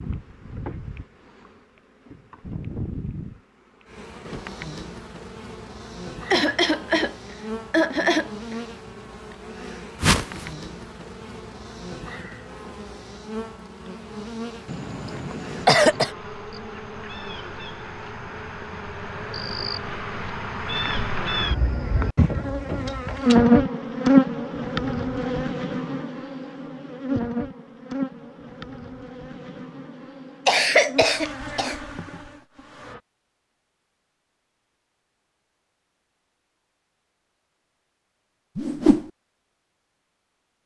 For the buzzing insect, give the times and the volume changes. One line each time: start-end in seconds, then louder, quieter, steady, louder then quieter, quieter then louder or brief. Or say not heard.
0.0-33.0 louder then quieter.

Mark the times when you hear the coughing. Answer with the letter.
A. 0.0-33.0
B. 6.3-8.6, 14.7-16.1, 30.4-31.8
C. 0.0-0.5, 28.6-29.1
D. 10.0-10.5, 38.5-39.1
B.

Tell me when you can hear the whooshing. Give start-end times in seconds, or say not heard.
10.0-10.5, 38.5-39.1.